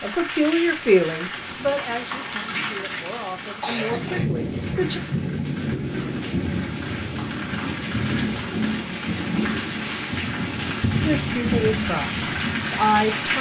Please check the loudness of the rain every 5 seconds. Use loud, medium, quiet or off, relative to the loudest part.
medium, loud, loud.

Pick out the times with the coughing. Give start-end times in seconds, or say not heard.
2.5-4.2.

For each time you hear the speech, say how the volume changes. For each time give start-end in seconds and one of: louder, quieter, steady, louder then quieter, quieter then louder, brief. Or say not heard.
0.0-5.0 quieter then louder
11.0-12.1 brief
12.7-13.3 brief.